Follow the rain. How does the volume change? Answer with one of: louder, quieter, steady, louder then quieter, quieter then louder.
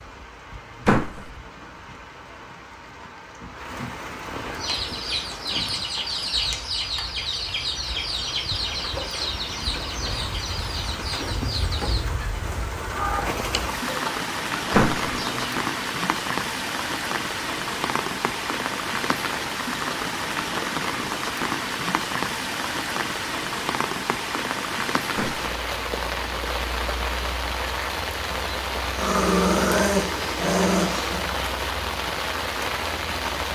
louder.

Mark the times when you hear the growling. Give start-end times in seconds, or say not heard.
28.9-31.2.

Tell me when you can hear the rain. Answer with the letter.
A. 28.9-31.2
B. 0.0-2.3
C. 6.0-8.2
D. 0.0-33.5
D.